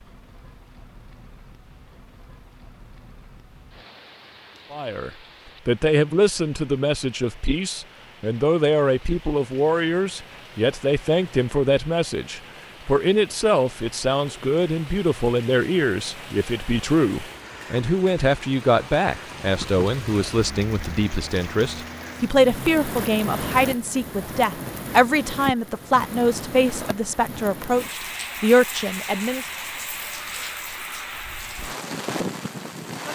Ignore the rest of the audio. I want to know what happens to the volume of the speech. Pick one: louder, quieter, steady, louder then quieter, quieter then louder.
steady.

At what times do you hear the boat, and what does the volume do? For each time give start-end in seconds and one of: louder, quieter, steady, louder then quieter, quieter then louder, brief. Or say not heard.
not heard.